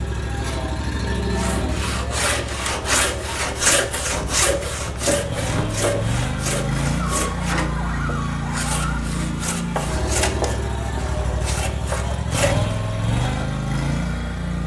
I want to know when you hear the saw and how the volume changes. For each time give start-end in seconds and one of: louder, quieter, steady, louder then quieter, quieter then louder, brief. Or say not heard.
1.3-13.6 quieter.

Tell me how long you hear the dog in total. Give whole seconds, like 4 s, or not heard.
2 s.